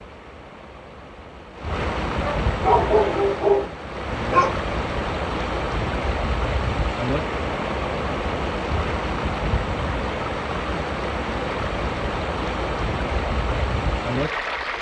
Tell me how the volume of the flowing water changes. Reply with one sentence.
The volume of the flowing water stays about the same.